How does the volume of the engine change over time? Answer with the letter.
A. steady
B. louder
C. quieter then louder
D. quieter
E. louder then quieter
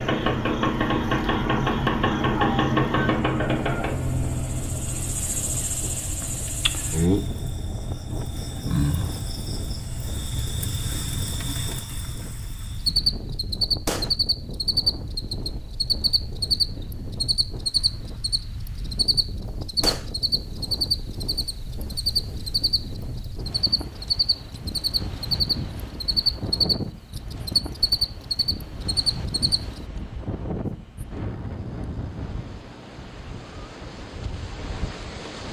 D.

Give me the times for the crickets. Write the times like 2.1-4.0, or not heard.
0.0-29.8.